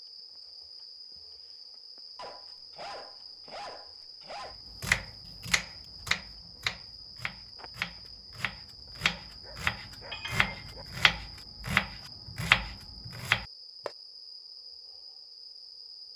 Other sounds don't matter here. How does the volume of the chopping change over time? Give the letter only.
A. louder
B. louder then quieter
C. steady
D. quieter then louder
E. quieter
D.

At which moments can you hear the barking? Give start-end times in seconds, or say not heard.
2.1-4.5, 8.8-10.8.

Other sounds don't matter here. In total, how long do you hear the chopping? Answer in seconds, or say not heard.
9 s.